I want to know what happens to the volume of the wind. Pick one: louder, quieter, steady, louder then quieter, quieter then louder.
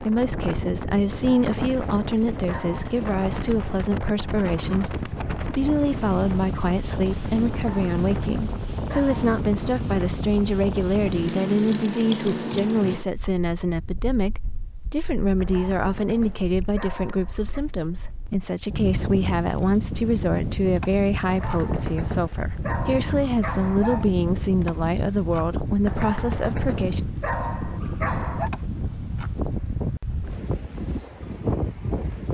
quieter then louder.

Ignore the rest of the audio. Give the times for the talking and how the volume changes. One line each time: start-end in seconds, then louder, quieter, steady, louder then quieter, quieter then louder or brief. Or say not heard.
0.0-27.0 steady.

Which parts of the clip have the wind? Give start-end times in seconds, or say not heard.
0.0-32.3.